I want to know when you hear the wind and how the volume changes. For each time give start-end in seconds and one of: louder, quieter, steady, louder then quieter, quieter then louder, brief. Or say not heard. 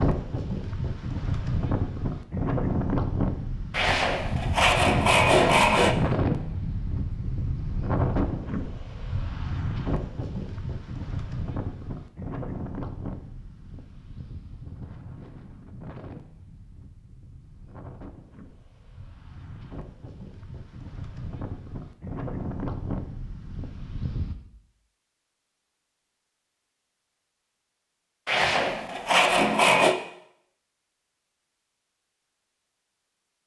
0.0-24.4 quieter then louder.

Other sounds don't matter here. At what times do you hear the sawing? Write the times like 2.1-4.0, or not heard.
3.7-6.0, 28.2-29.9.